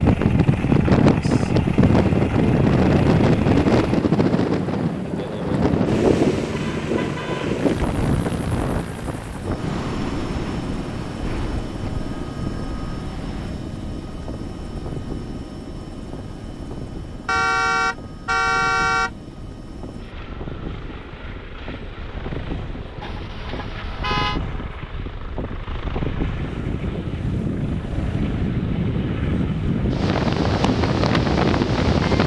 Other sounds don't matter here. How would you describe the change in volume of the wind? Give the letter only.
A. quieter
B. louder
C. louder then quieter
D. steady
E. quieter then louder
E.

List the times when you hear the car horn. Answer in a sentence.
You can hear the car horn from 6.5 to 7.5 s, from 17.2 to 19.1 s and from 23.0 to 24.4 s.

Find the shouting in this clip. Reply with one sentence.
You can't hear the shouting here.